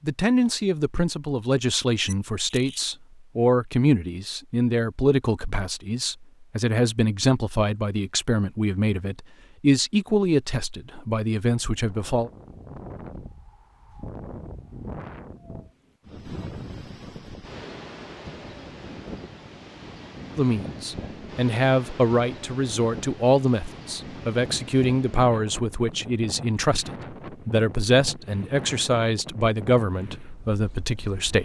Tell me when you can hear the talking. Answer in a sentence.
The talking can be heard from 0.0 to 12.3 s and from 20.4 to 31.3 s.